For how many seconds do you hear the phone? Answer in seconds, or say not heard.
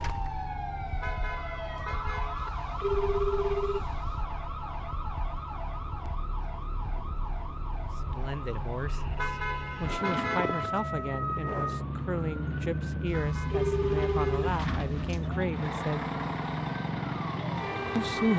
4 s.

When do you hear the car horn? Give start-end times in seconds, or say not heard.
1.0-2.5, 9.2-10.7, 13.1-14.5.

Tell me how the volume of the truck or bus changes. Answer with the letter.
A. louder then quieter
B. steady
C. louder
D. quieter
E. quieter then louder
C.